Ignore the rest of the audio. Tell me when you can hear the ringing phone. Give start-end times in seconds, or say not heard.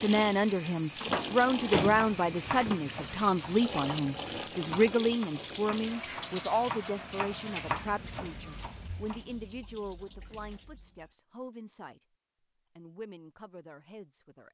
not heard.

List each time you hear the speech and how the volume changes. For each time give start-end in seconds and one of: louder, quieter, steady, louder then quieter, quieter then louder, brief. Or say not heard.
0.0-12.0 quieter
12.8-14.5 brief.